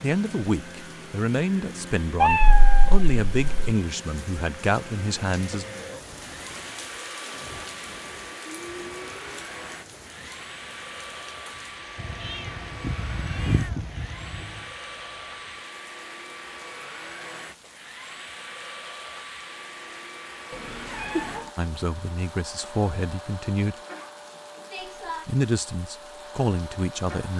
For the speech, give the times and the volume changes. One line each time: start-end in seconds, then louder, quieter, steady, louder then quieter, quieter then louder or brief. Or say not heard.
0.0-5.7 steady
21.6-23.8 brief
25.2-27.3 brief.